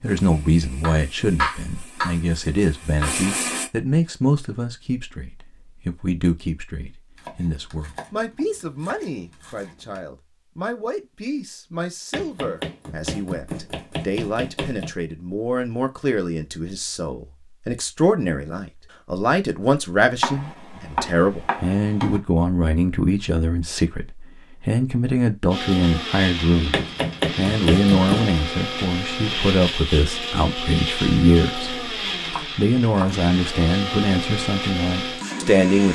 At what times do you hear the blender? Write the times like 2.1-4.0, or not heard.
0.0-3.7, 25.4-35.9.